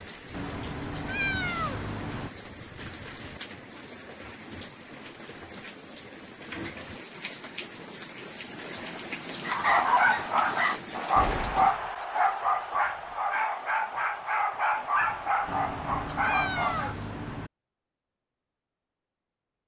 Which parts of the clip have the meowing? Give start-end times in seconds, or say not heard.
0.3-2.3, 15.4-17.5.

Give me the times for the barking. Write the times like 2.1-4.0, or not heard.
9.4-16.9.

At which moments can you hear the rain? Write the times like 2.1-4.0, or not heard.
0.0-11.8.